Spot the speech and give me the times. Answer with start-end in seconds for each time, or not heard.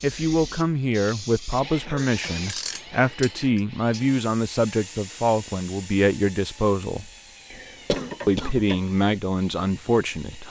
0.0-7.0, 8.2-10.4.